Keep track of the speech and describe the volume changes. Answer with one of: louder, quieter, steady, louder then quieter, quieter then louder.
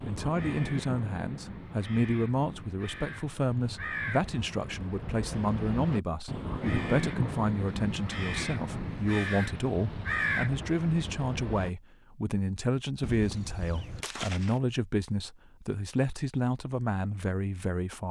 steady.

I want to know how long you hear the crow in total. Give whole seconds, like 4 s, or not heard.
12 s.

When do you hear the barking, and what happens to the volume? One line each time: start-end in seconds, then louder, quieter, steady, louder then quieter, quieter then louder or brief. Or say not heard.
not heard.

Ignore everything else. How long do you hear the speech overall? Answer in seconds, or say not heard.
18 s.